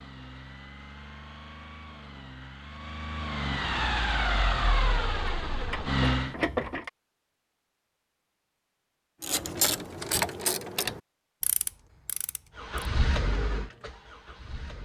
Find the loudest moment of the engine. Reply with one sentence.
The loudest moment of the engine is at 4 seconds.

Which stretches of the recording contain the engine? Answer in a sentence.
You can hear the engine from 0.0 to 6.3 s and from 12.6 to 14.8 s.